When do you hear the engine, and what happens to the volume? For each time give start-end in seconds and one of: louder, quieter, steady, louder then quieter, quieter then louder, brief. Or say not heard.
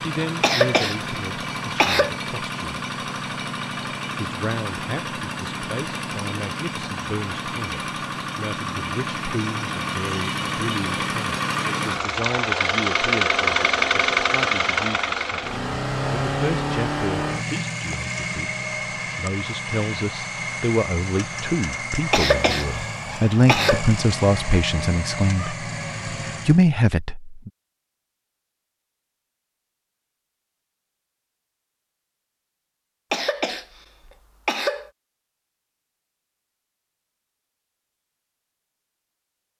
0.0-26.6 louder then quieter.